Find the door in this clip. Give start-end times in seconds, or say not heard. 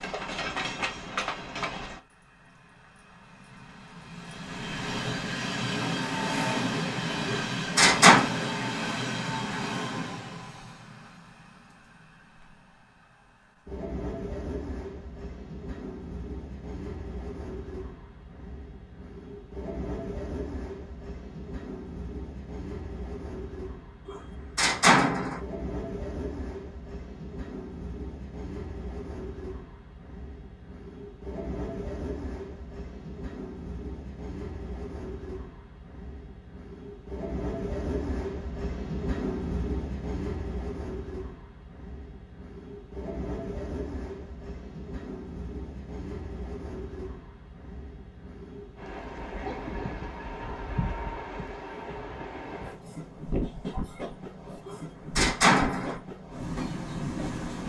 7.2-8.2, 24.1-25.4, 54.6-56.0.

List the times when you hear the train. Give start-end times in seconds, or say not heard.
0.0-12.7, 13.7-57.6.